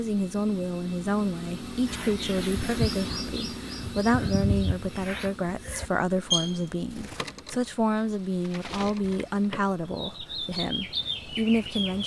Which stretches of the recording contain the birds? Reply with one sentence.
You can hear the birds from 1.9 to 12.0 s.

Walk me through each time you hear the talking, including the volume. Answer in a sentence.
The talking can be heard from 0.0 to 12.0 s, at a steady volume.